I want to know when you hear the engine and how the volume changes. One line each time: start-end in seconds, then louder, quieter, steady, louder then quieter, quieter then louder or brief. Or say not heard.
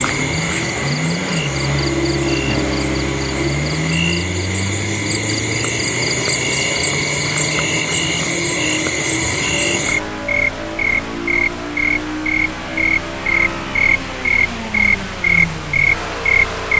0.0-16.7 quieter.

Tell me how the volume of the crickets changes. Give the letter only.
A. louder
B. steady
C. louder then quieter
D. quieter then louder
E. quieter
A.